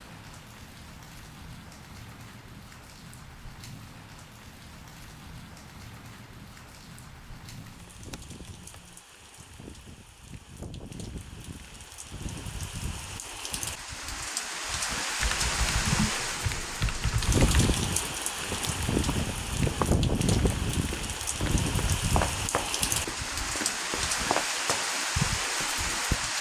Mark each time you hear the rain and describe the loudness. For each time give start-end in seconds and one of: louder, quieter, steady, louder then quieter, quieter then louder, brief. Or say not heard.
0.0-26.3 louder.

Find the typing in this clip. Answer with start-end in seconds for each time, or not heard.
7.5-9.0, 15.2-17.8.